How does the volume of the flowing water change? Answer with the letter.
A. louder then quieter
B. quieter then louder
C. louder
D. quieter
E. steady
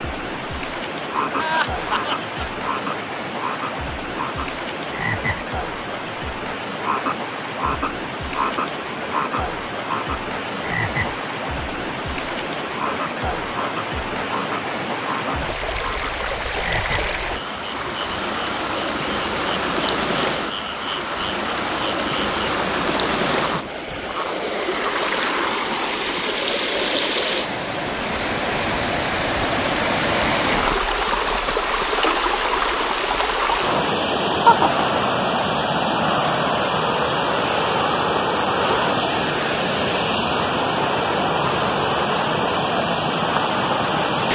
C.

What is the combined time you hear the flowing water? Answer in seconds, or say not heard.
44 s.